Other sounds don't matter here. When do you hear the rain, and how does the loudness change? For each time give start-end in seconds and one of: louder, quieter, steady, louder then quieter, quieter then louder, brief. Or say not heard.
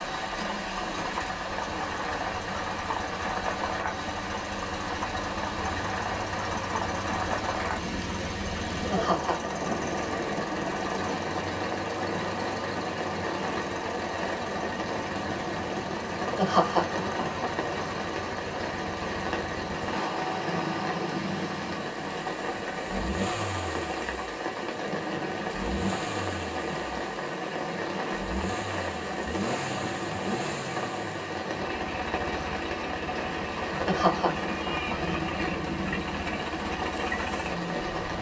0.0-38.1 steady.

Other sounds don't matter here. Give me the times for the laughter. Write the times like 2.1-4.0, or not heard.
8.8-9.6, 16.2-17.5, 33.7-35.0.